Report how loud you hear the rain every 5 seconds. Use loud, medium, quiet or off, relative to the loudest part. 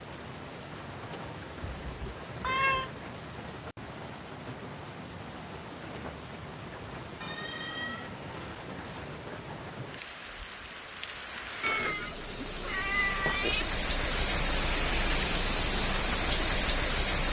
quiet, quiet, medium, loud.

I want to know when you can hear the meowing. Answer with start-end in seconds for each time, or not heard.
1.6-2.9, 7.2-9.1, 11.6-13.7.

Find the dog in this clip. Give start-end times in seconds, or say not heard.
not heard.